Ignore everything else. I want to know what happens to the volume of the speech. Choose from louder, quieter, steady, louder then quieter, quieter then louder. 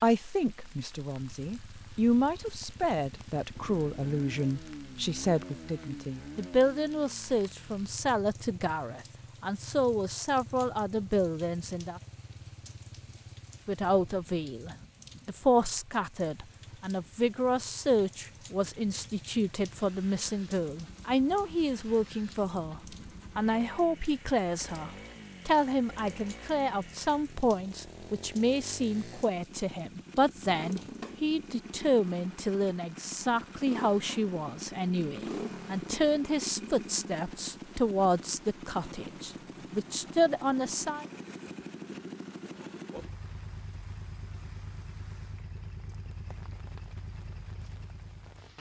steady.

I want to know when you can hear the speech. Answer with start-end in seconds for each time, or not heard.
0.0-12.0, 13.7-41.0.